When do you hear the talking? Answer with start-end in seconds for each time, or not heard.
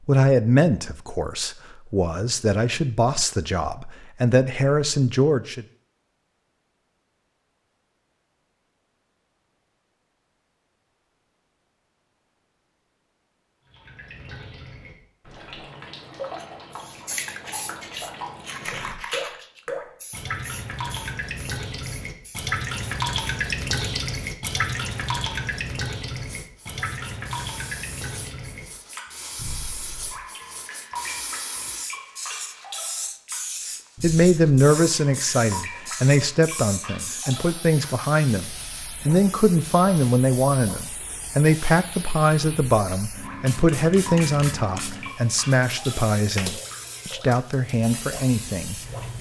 0.1-5.7, 34.0-49.1.